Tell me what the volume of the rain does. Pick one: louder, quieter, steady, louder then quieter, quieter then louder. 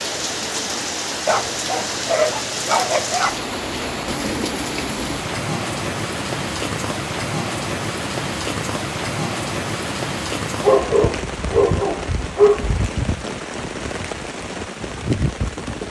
steady.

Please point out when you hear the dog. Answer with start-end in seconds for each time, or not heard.
1.2-3.4, 10.6-12.8.